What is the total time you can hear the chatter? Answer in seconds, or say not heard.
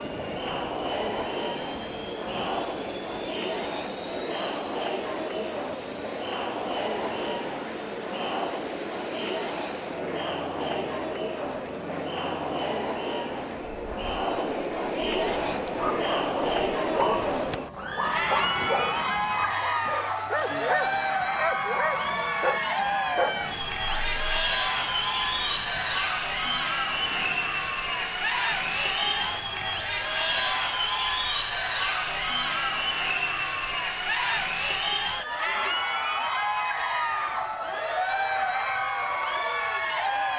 40 s.